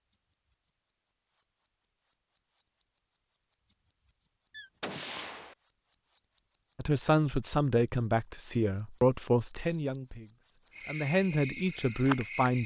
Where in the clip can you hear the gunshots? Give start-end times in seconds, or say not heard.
4.5-5.5.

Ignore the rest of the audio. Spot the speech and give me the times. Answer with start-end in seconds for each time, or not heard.
6.8-12.6.